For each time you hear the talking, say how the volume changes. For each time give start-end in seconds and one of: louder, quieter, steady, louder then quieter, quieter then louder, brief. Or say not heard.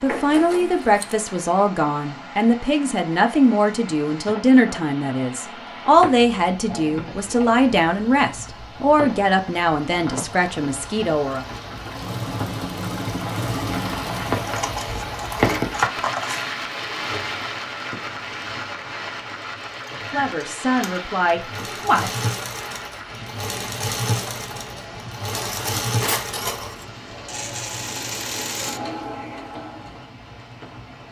0.0-11.4 steady
20.1-22.2 brief.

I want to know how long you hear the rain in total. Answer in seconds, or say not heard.
31 s.